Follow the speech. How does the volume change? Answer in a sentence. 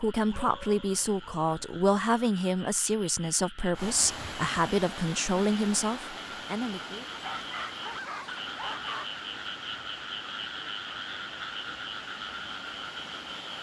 The loudness of the speech stays about the same.